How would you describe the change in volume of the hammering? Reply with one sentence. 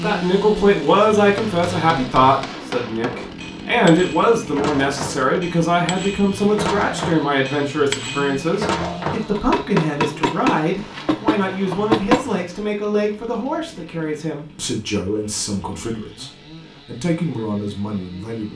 The loudness of the hammering goes up.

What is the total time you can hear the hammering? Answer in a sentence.
You can hear the hammering for 11 seconds altogether.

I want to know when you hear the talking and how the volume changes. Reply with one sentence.
The talking can be heard from 0.0 to 18.5 s, getting quieter.